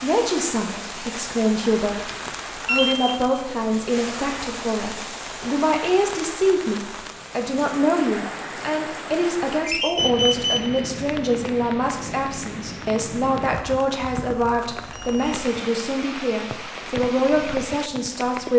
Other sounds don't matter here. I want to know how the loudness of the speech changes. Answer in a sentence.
The loudness of the speech stays about the same.